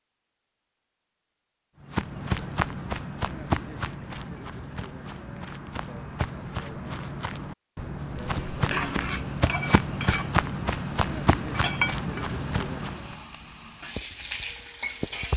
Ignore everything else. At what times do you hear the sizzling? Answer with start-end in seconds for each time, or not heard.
8.3-15.3.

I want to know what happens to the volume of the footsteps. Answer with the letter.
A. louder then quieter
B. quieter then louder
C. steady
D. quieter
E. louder
B.